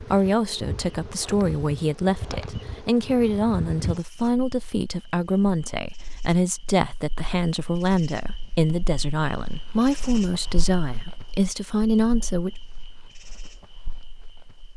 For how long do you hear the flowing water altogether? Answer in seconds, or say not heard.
not heard.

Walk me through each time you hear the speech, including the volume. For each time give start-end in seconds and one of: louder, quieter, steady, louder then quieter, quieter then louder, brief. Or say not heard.
0.0-12.6 steady.